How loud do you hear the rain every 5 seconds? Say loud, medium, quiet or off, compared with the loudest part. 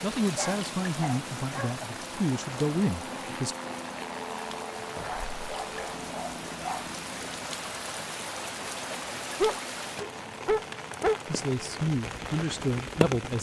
medium, loud, loud.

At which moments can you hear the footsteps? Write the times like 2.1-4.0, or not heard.
not heard.